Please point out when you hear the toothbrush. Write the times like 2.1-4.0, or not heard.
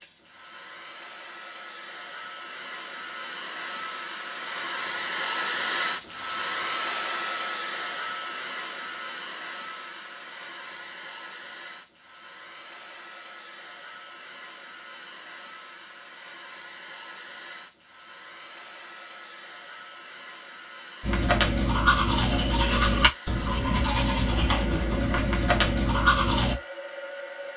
21.0-26.6.